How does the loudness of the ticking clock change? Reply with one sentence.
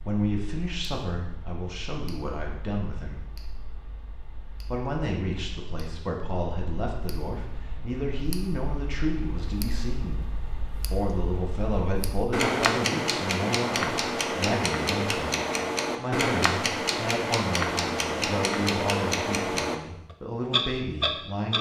The loudness of the ticking clock goes up.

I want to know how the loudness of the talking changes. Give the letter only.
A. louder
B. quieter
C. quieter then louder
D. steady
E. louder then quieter
D.